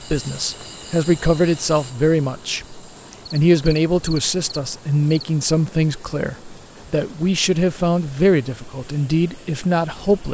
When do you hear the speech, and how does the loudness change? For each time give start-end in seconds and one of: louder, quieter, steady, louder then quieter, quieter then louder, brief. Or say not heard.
0.0-10.2 steady.